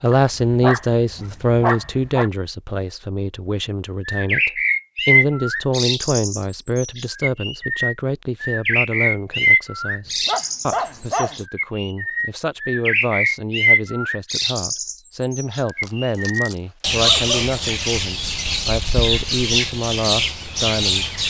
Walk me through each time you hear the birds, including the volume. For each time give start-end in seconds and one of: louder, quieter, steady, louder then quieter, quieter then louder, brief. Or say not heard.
4.0-21.2 steady.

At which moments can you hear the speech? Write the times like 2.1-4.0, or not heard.
0.0-21.1.